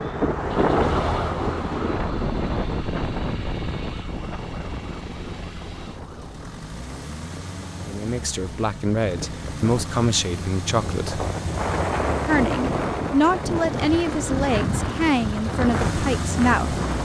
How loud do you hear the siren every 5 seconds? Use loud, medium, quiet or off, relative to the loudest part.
loud, quiet, off, off.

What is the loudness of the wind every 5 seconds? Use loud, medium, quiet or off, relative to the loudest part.
loud, quiet, loud, loud.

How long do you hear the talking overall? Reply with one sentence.
The talking can be heard for 8 seconds in total.